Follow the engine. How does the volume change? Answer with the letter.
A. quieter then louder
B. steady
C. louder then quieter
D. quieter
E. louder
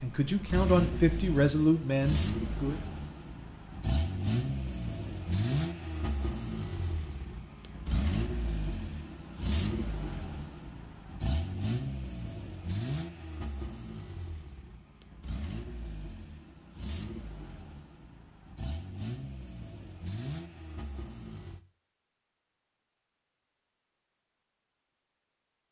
D.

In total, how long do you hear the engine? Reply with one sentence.
The engine can be heard for 22 seconds in total.